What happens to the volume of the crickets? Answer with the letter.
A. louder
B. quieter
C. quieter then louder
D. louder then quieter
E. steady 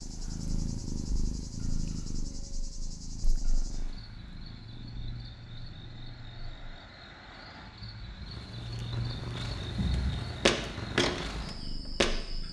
A.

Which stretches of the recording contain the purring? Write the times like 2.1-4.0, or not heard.
0.0-6.8, 8.1-12.4.